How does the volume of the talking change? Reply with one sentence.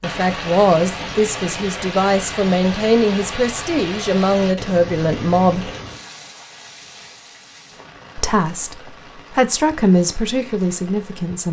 The volume of the talking stays about the same.